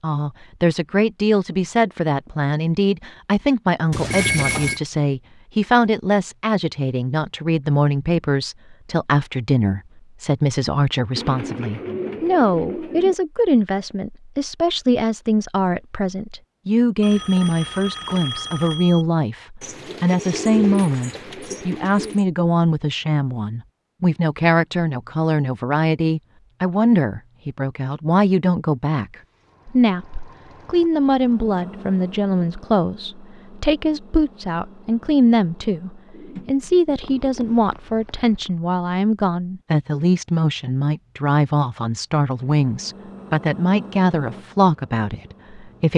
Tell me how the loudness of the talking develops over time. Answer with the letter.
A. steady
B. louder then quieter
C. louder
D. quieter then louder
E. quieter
A.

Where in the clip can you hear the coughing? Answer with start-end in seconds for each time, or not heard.
not heard.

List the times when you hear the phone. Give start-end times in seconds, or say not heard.
3.9-4.8, 17.0-19.1, 37.0-38.5.